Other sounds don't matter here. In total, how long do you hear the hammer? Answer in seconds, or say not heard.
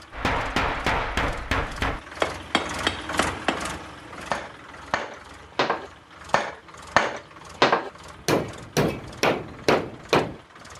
10 s.